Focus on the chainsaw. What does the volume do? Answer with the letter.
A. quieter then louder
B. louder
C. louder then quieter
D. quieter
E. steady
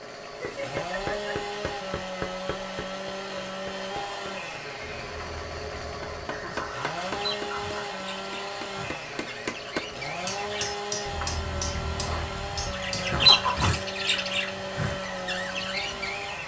E.